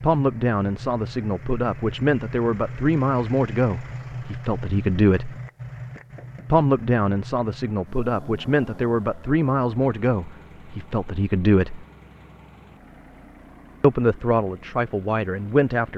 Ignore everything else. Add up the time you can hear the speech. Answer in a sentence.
You can hear the speech for 13 seconds altogether.